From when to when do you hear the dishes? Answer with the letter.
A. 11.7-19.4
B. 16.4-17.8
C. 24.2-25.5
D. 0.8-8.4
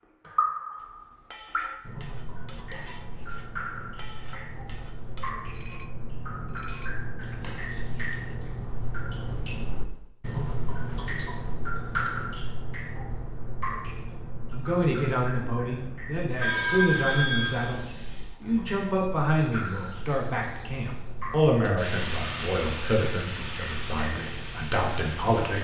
D.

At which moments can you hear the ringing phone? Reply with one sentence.
You can hear the ringing phone from 16.4 to 17.8 s.